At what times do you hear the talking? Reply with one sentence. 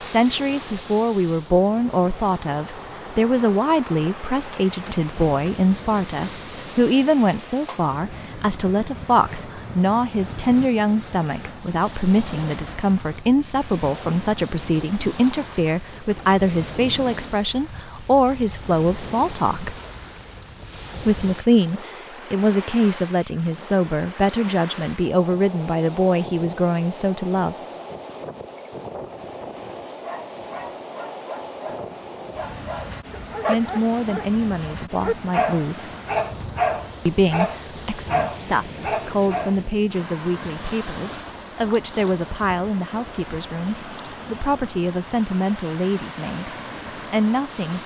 The talking can be heard from 0.0 to 19.8 s, from 21.0 to 27.6 s, from 33.5 to 35.9 s, from 37.0 to 46.5 s and from 47.1 to 47.8 s.